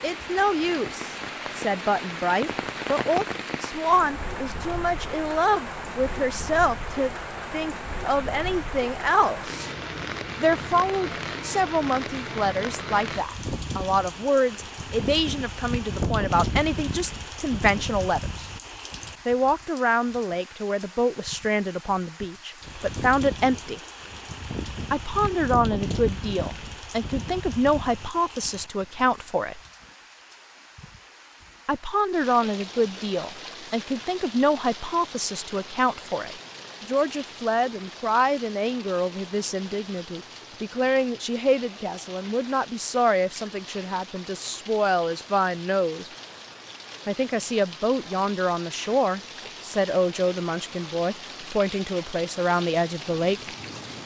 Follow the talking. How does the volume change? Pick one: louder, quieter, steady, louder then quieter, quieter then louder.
steady.